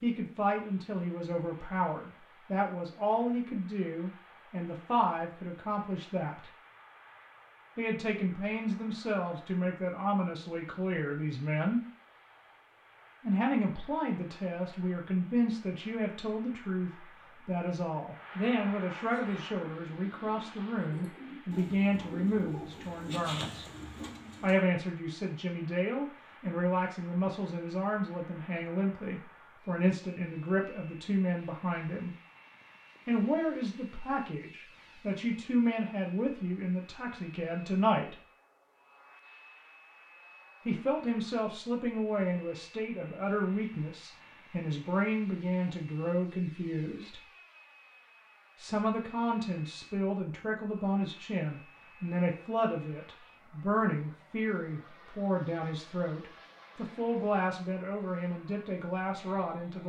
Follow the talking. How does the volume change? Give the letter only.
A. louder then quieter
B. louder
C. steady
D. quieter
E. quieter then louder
C.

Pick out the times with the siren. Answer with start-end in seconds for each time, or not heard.
not heard.